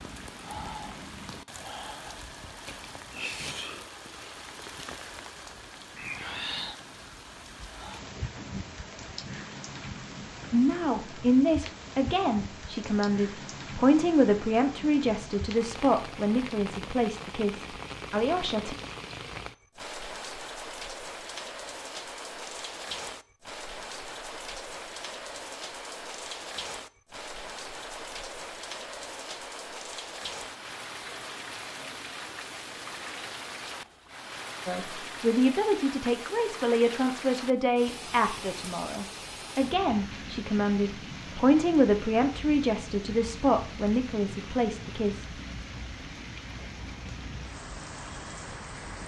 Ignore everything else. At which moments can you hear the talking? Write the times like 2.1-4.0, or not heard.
10.5-18.8, 34.6-45.2.